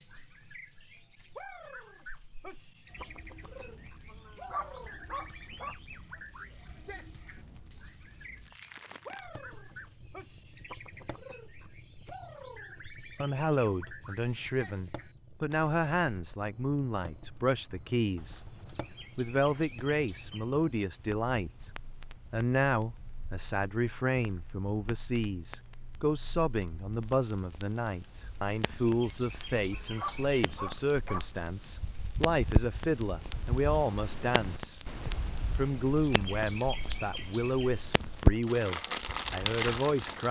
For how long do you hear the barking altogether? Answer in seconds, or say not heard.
3 s.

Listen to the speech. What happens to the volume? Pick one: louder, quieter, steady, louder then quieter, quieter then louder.
steady.